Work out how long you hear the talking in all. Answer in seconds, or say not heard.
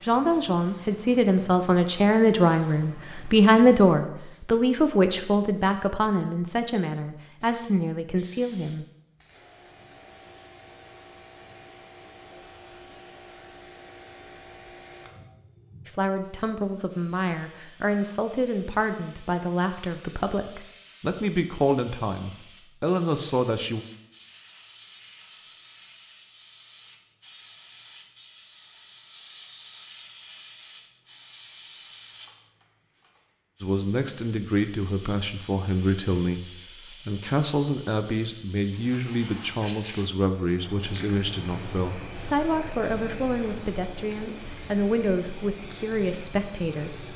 30 s.